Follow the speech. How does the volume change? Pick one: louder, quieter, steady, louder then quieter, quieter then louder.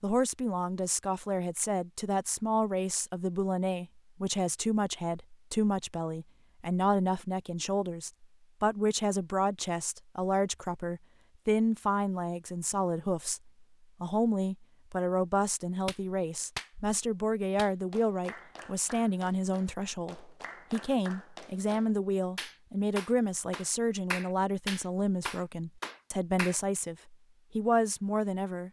steady.